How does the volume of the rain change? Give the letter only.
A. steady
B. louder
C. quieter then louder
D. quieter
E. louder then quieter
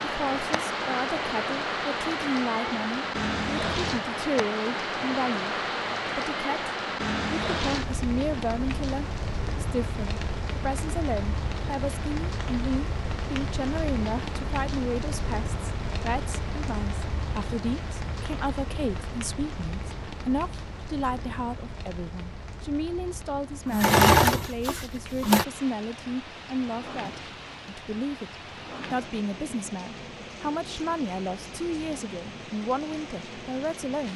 D.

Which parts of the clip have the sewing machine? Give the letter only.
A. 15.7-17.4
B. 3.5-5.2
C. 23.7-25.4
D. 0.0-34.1
C.